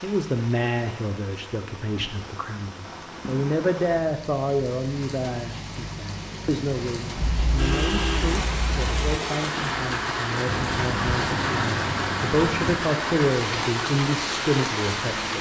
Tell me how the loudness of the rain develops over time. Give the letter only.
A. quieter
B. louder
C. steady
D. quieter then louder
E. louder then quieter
B.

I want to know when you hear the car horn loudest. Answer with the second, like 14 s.
8 s.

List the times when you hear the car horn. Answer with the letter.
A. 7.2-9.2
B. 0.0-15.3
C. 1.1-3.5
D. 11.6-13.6
A.